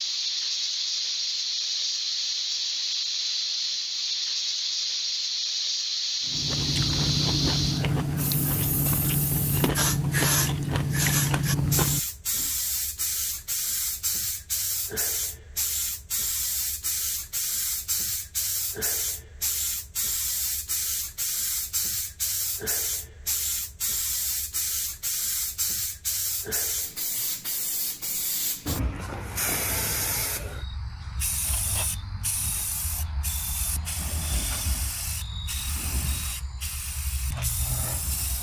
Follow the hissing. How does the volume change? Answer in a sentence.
The volume of the hissing goes down.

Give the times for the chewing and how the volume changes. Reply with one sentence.
The chewing can be heard from 6.2 to 12.5 s, at a steady volume.